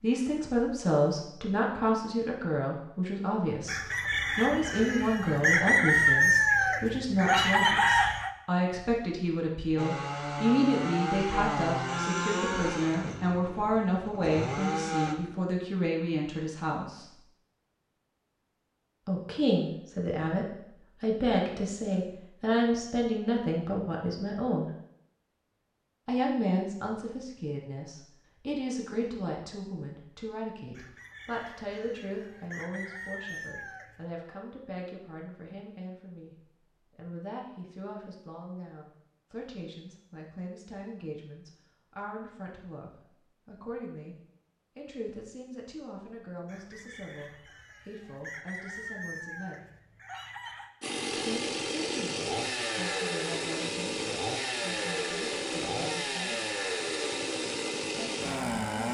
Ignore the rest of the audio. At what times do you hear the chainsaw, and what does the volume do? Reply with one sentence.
The chainsaw can be heard from 9.8 to 15.2 s, getting quieter then louder; and from 50.8 to 58.8 s, at a steady volume.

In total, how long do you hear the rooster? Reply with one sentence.
You can hear the rooster for 12 seconds altogether.